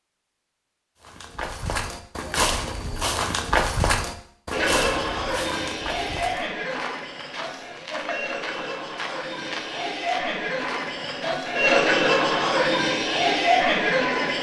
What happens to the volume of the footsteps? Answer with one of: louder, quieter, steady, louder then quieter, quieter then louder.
quieter.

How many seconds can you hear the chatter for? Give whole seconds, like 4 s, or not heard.
10 s.